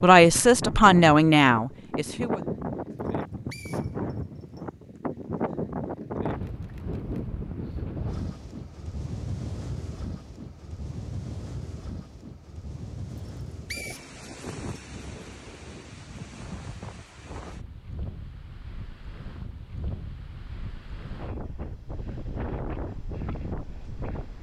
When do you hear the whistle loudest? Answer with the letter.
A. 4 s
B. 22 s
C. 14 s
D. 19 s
C.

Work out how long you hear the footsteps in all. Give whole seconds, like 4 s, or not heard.
not heard.